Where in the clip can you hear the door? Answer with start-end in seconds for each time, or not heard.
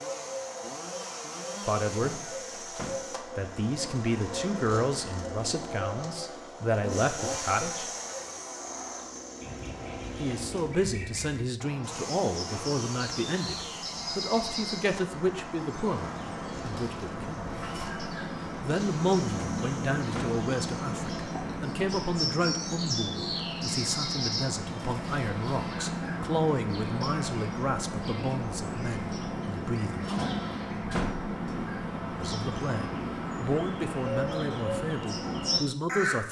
1.9-3.0, 19.2-20.4, 30.1-31.2.